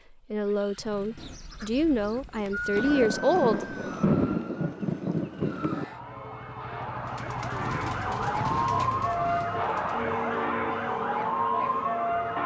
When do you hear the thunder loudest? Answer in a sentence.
The volume of the thunder peaks at 4 seconds.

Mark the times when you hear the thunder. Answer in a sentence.
The thunder can be heard from 2.8 to 5.8 s.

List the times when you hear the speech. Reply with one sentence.
The speech can be heard from 0.3 to 3.8 s.